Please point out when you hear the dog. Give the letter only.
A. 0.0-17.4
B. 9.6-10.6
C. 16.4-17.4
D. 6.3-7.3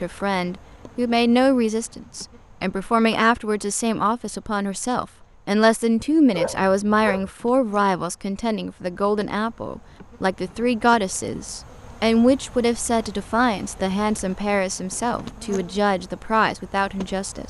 D.